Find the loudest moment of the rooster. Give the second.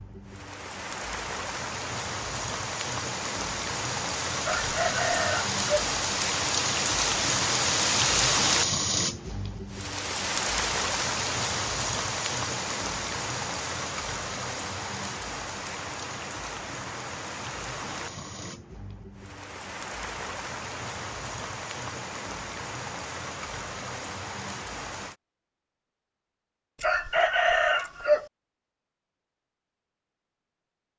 28 s.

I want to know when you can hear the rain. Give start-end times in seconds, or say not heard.
0.0-25.1.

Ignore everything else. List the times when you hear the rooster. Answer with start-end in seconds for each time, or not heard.
4.4-5.9, 26.8-28.2.